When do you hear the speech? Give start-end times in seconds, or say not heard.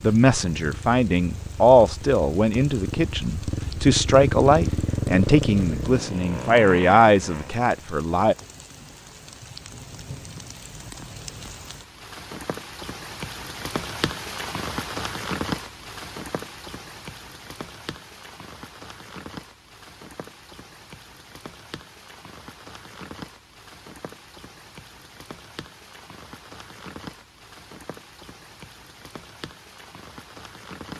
0.0-8.3.